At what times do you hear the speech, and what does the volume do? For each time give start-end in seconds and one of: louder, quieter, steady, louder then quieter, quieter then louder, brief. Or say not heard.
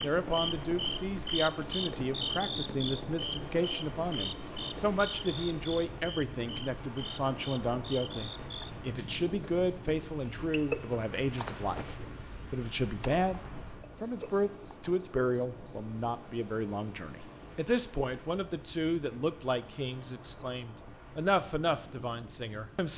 0.0-22.9 steady.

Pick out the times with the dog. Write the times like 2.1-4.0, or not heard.
not heard.